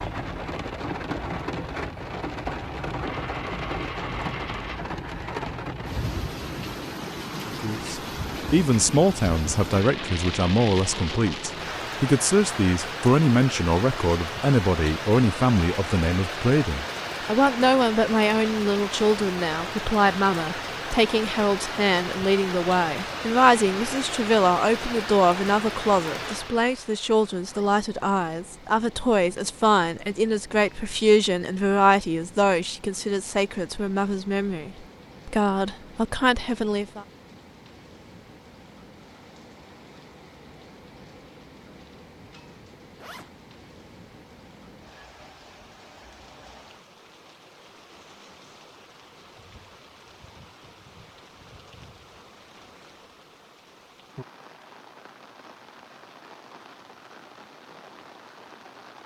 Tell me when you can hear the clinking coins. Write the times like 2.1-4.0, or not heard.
3.0-4.8.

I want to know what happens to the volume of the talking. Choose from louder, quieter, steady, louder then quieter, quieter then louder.
steady.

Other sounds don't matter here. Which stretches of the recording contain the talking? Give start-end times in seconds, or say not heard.
7.5-37.0.